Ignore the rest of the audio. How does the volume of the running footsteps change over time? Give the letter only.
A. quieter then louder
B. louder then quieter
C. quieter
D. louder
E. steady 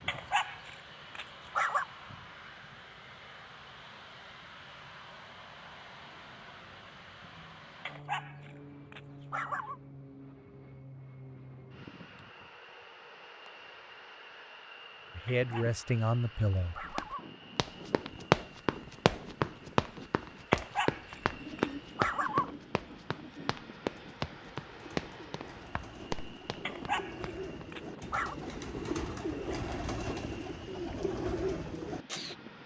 C.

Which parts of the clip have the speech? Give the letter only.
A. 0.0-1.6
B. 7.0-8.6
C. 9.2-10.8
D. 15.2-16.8
D.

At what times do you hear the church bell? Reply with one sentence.
The church bell can't be heard in this clip.